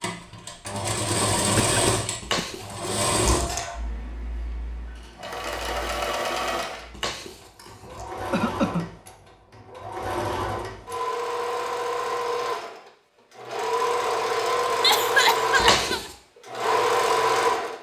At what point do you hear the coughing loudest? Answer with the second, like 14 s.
15 s.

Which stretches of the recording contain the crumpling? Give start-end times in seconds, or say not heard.
2.2-3.6, 6.9-8.1, 15.6-16.1.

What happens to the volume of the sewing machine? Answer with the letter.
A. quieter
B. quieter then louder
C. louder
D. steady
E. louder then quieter
B.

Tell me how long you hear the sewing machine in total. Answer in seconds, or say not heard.
18 s.